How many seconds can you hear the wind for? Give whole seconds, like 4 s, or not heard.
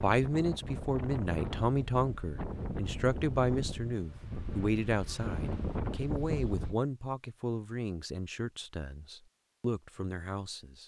7 s.